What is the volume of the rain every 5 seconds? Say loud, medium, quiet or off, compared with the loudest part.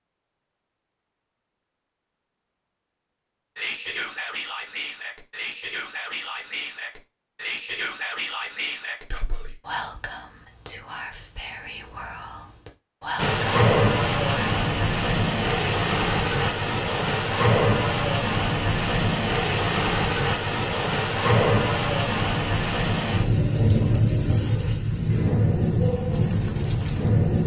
off, off, loud, loud, loud, loud.